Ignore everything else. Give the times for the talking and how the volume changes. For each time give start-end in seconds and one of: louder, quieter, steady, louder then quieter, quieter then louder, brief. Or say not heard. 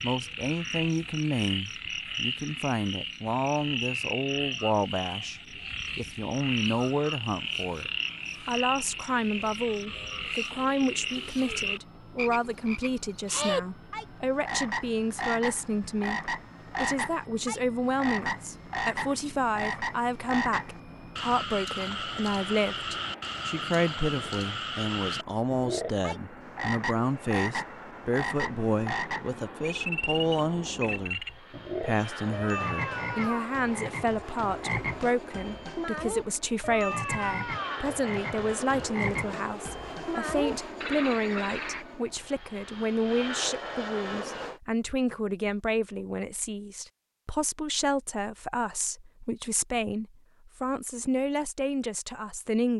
0.0-52.7 steady.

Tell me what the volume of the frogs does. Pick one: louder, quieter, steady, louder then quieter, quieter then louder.
steady.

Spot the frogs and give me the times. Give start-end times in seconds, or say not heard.
0.0-41.9.